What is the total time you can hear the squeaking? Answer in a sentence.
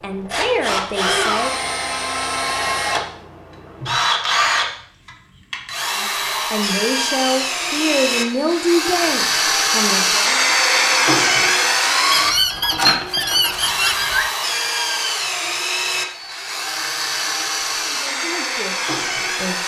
The squeaking can be heard for 2 seconds in total.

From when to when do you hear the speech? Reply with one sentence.
The speech can be heard from 0.0 to 1.6 s, from 6.0 to 10.4 s and from 17.4 to 19.6 s.